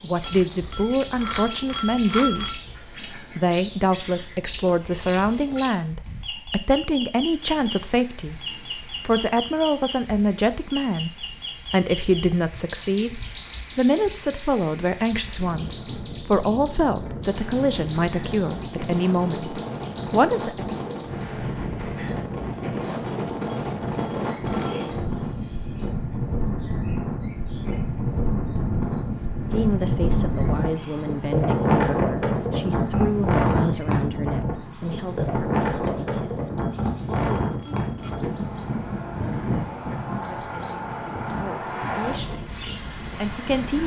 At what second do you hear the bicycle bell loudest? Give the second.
2 s.